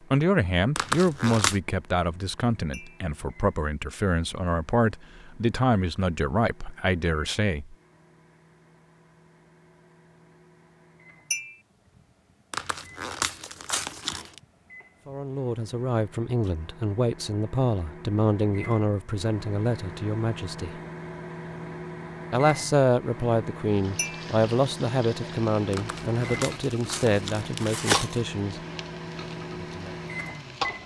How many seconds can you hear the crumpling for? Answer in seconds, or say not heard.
5 s.